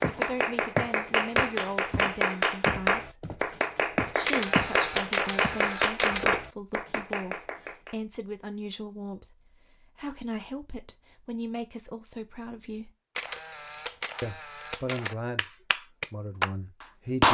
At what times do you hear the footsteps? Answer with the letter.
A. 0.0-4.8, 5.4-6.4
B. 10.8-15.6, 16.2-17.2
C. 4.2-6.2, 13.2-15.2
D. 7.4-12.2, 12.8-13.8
A.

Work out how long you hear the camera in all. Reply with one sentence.
The camera can be heard for 4 seconds in total.